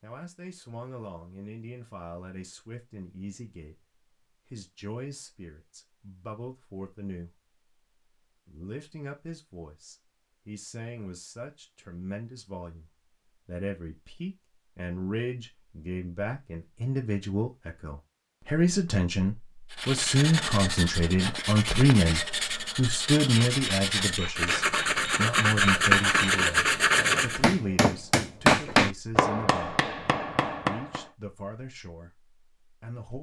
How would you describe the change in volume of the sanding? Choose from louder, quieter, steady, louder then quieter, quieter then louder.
louder.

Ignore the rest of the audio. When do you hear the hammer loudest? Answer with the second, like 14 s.
29 s.